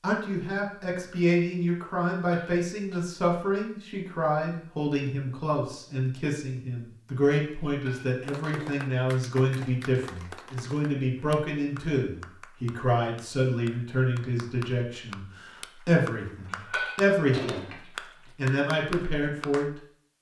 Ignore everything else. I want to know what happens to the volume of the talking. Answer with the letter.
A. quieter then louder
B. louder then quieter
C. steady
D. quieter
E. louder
C.